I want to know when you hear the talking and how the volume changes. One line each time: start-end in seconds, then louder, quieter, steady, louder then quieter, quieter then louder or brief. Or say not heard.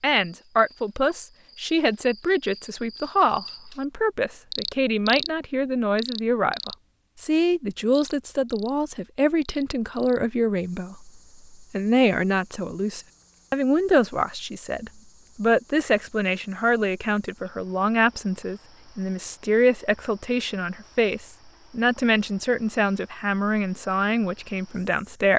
0.0-25.3 steady.